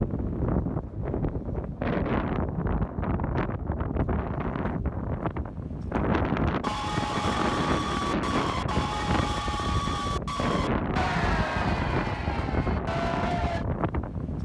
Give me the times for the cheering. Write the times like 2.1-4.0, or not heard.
6.6-13.7.